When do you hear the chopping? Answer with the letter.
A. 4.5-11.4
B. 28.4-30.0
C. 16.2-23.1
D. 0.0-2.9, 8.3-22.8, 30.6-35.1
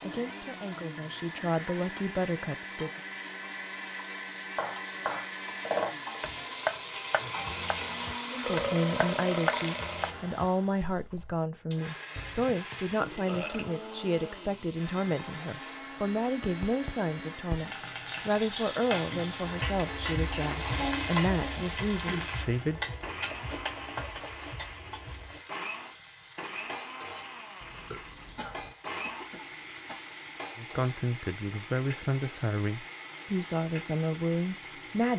A.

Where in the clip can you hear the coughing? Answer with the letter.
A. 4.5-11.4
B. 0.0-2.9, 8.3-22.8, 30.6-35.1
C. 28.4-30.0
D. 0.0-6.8
C.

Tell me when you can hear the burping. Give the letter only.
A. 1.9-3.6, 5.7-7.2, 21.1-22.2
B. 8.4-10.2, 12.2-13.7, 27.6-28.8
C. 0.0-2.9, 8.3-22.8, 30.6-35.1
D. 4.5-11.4
B.